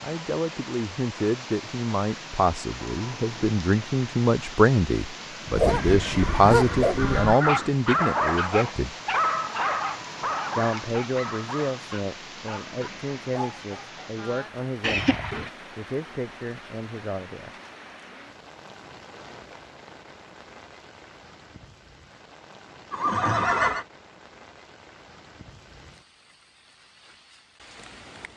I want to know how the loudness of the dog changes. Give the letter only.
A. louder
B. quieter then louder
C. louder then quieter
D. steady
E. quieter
E.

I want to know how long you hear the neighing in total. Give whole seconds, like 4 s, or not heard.
4 s.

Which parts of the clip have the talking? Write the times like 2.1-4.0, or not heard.
0.0-8.9, 10.6-17.6.